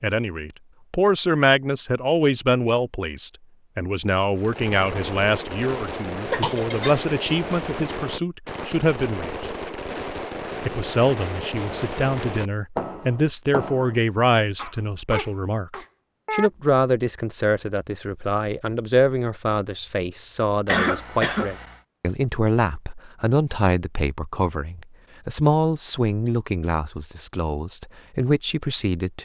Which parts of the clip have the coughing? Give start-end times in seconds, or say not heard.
6.3-7.0, 14.6-16.5, 20.6-21.8.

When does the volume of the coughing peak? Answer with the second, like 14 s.
21 s.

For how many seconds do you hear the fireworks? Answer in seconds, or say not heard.
10 s.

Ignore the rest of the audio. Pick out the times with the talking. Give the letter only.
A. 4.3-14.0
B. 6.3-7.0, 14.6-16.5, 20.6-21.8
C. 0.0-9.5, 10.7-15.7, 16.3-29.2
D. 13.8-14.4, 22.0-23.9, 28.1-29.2
C.